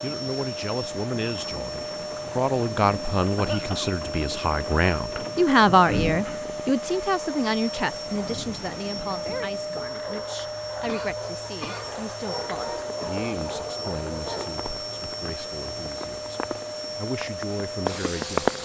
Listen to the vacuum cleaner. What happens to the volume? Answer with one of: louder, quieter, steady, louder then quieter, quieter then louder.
steady.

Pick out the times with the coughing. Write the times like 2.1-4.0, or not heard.
3.4-4.0, 10.8-11.9.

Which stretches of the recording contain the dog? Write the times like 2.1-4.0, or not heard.
7.2-14.6.